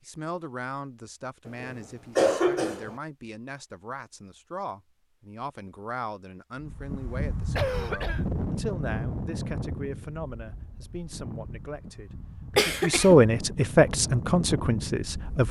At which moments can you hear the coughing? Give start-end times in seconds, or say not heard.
1.6-3.0, 7.5-8.2, 12.6-13.2.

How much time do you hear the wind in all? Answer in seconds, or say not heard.
9 s.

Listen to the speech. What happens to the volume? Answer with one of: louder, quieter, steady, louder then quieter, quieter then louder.
louder.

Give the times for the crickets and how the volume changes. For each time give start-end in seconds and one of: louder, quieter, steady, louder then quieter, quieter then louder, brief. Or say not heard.
not heard.